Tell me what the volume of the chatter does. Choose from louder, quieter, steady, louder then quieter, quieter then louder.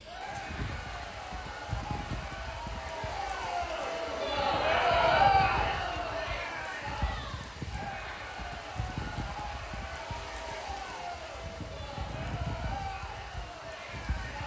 louder then quieter.